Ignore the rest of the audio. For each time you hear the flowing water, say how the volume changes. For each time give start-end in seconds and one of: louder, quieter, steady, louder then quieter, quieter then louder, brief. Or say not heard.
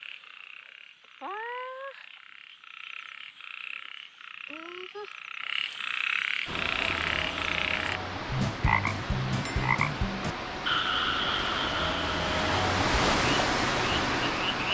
6.5-14.6 louder.